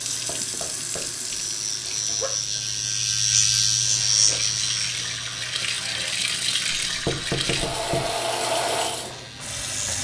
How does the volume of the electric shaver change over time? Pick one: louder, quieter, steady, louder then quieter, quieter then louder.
louder then quieter.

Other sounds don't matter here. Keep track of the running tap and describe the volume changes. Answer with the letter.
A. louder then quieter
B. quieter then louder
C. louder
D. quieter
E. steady
B.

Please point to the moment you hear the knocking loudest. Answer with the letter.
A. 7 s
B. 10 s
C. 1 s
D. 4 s
A.